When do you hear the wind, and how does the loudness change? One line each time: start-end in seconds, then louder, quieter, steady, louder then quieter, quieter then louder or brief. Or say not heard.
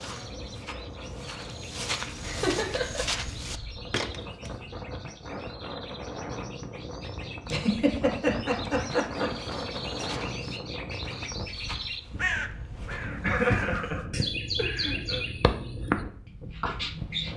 0.0-17.3 louder then quieter.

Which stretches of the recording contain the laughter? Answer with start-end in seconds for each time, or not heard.
2.2-3.0, 7.5-9.3, 13.2-15.2.